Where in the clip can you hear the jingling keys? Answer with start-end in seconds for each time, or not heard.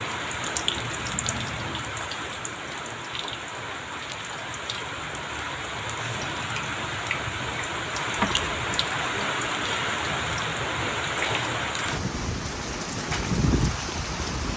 8.2-8.8.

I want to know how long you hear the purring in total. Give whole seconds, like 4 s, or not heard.
not heard.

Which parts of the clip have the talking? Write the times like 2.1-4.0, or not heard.
not heard.